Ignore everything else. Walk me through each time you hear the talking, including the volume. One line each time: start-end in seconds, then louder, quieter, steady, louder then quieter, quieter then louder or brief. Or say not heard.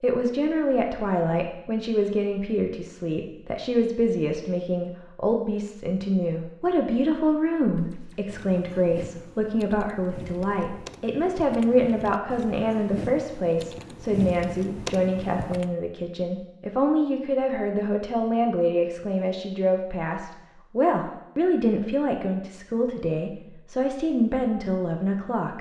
0.0-25.5 steady.